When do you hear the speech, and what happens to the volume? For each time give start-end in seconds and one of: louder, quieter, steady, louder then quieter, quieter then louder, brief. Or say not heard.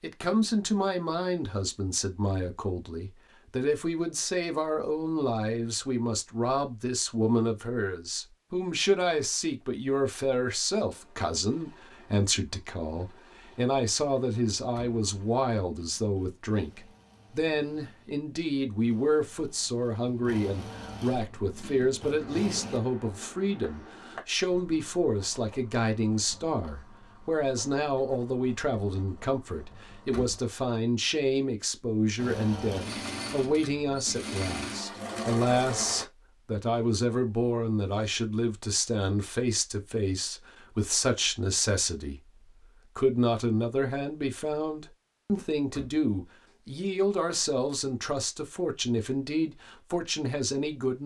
0.0-51.0 steady.